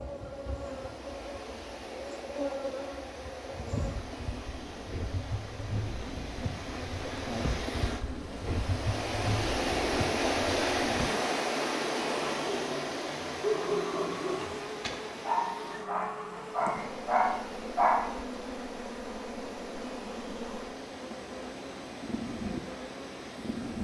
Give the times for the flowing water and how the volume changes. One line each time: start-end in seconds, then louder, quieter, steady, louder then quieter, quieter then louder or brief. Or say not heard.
0.0-23.8 louder then quieter.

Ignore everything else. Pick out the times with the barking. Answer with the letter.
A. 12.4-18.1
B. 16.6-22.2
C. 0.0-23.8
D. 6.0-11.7
A.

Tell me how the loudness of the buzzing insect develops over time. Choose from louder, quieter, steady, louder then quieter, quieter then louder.
steady.